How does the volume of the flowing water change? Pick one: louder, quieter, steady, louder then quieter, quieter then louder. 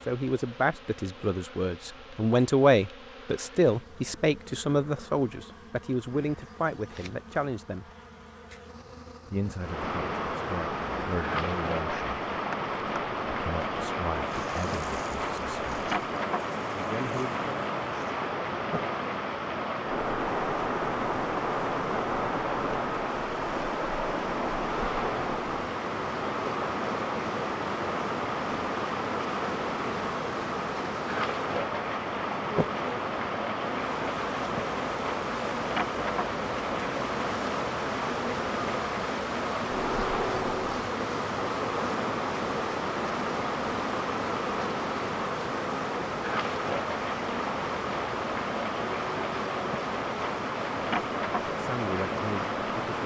steady.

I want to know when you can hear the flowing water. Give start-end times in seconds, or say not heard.
9.6-53.0.